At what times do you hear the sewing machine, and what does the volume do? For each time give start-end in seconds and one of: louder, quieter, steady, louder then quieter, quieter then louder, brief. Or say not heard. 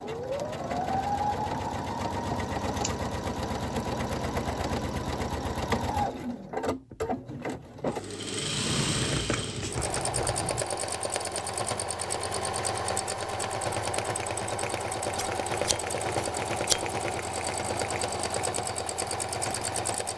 0.0-20.1 steady.